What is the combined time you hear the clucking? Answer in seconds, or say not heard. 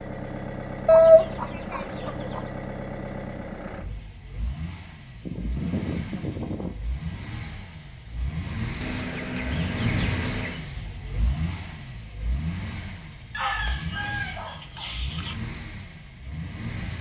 7 s.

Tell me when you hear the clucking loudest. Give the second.
1 s.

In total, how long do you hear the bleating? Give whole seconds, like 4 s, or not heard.
not heard.